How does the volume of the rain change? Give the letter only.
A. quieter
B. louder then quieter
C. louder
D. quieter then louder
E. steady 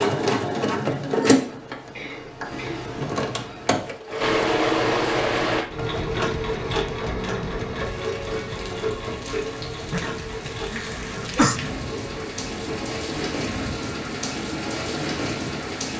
C.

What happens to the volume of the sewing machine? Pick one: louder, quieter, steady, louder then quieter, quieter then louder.
quieter.